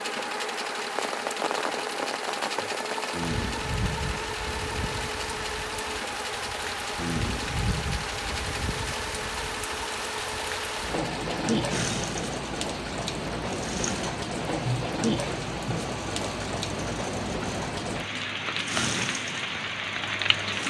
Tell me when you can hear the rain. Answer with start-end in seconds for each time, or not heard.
0.0-20.6.